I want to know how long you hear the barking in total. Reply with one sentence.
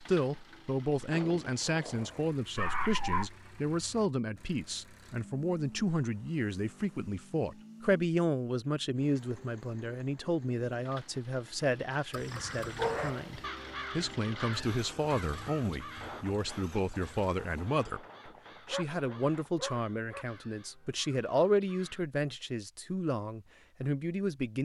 You can hear the barking for 4 seconds altogether.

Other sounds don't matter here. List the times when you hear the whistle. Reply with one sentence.
You can't hear the whistle here.